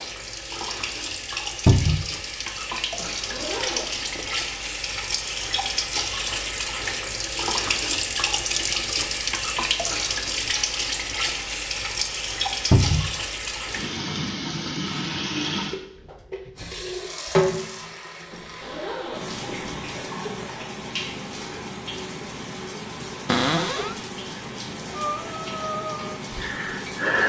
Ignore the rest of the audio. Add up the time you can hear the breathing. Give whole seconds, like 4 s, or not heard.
2 s.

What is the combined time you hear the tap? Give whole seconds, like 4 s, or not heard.
27 s.